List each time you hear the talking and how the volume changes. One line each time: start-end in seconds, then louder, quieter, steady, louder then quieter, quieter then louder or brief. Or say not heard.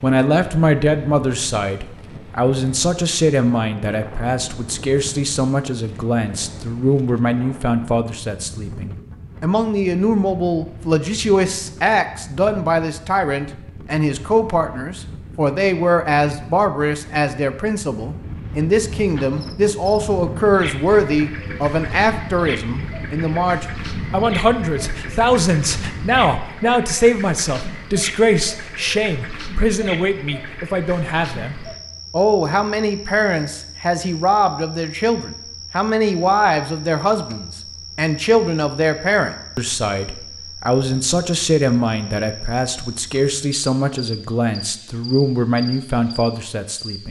0.0-47.0 steady.